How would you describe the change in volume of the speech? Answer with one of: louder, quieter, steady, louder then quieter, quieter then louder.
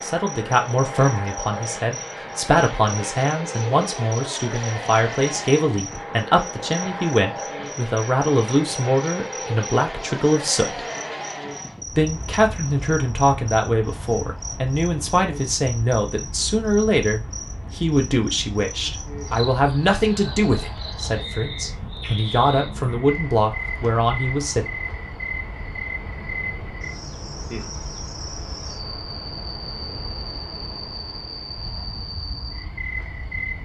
steady.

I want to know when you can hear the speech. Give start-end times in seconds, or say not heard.
0.0-10.8, 11.9-24.6.